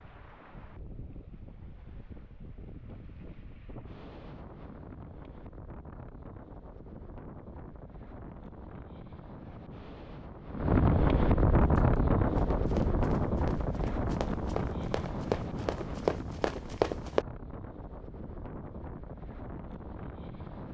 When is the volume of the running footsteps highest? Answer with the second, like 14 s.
17 s.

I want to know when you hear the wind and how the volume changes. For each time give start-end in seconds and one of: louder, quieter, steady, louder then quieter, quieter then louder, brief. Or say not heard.
0.0-20.6 louder then quieter.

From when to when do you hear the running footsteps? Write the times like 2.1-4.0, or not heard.
11.6-17.2.